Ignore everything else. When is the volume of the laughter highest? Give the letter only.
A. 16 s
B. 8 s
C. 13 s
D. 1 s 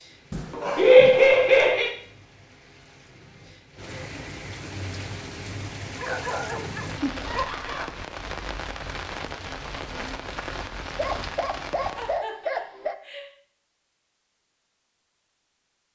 D.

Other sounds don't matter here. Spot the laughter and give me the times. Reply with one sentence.
You can hear the laughter from 0.8 to 1.9 s, from 7.2 to 7.8 s and from 11.9 to 13.2 s.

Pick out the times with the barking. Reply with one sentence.
The barking can be heard from 0.3 to 1.8 s, from 6.0 to 8.0 s and from 10.9 to 12.9 s.